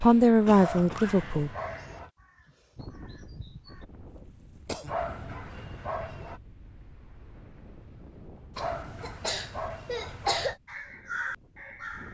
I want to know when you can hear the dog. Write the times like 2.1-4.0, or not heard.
0.6-2.1, 4.8-6.4, 8.6-10.6.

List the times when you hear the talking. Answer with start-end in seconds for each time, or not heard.
0.0-1.5.